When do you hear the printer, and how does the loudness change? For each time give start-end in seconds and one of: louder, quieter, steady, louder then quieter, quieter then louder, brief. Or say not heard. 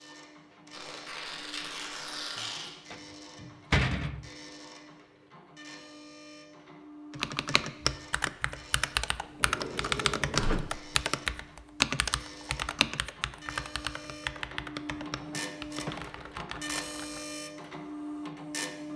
0.0-18.9 louder.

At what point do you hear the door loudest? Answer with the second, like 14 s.
4 s.